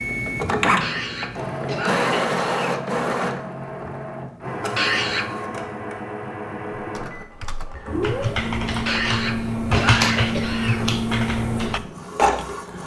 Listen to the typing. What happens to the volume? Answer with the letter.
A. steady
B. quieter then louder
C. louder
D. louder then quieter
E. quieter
D.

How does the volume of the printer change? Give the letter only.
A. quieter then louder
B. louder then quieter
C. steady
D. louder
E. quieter
A.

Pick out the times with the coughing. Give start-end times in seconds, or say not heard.
0.8-2.8, 4.8-5.3, 8.8-10.8.